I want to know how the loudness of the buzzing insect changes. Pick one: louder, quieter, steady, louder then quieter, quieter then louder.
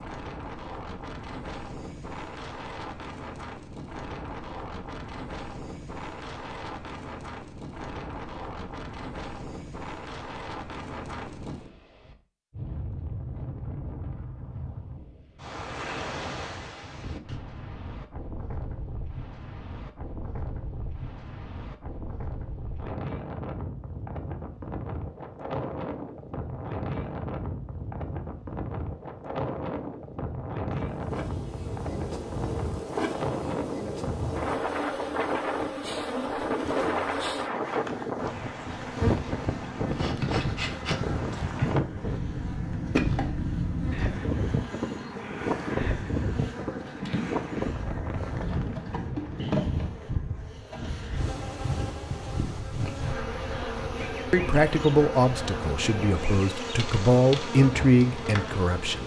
steady.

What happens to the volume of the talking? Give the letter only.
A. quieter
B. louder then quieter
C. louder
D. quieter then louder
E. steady
D.